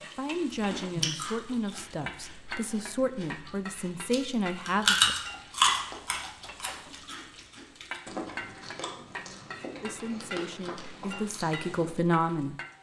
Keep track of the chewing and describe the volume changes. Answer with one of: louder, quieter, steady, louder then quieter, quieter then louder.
louder then quieter.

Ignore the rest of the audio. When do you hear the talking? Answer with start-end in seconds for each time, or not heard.
0.0-5.2, 9.8-12.6.